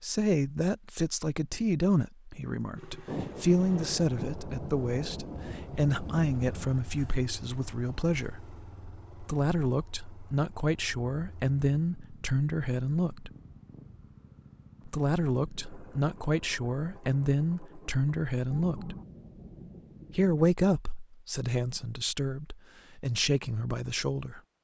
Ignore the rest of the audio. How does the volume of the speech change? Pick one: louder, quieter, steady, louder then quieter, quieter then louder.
steady.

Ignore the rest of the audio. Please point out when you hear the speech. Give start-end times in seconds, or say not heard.
0.0-8.4, 9.2-13.3, 14.8-18.9, 20.1-24.4.